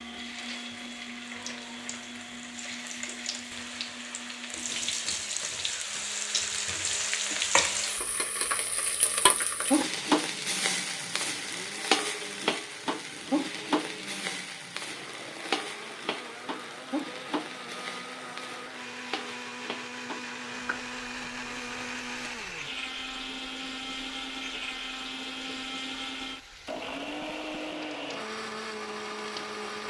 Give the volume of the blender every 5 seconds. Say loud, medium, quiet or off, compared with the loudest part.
medium, quiet, medium, medium, loud, loud.